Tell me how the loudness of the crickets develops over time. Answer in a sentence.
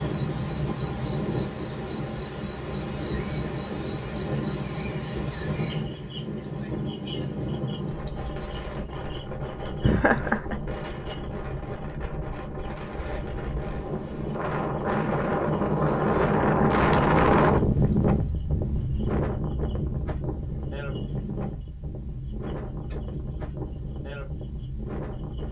The loudness of the crickets goes down.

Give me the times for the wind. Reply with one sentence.
The wind can be heard from 0.0 to 25.4 s.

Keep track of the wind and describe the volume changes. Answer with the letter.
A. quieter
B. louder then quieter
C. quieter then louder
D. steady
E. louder
B.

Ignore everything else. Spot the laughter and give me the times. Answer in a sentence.
The laughter can be heard from 9.8 to 10.6 s.